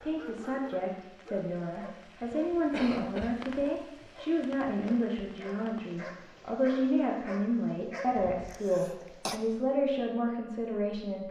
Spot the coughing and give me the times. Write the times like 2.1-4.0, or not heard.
2.2-4.1, 8.2-9.4.